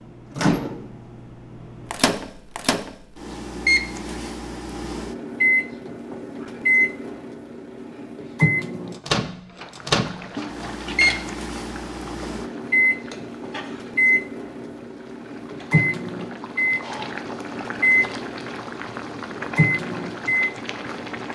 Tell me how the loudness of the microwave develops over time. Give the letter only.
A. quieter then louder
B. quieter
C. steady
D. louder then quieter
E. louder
C.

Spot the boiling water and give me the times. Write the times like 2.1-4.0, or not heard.
9.6-21.2.